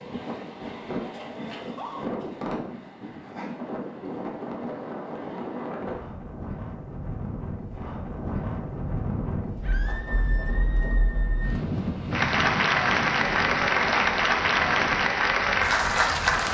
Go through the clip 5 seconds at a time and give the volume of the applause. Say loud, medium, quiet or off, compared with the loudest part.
off, off, loud, loud.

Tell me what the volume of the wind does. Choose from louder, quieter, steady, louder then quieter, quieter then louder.
steady.